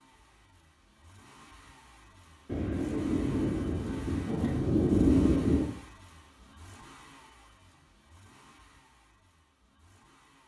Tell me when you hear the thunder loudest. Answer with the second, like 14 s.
5 s.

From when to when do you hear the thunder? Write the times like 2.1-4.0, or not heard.
2.5-5.8.